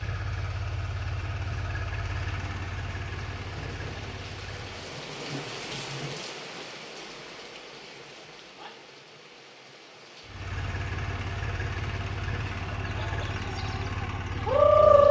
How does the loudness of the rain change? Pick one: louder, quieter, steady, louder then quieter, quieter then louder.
louder then quieter.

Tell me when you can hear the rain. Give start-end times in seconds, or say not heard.
0.0-12.8.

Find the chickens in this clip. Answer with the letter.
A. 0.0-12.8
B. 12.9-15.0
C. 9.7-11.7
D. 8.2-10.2
B.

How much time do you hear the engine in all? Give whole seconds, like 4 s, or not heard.
10 s.